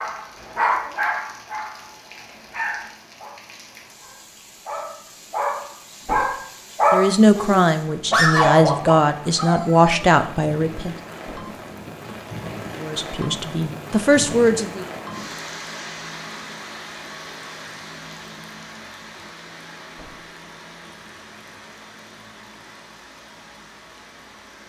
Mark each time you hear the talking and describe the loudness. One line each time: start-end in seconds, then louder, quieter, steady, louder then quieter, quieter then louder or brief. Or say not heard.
6.9-10.9 steady
12.8-14.8 brief.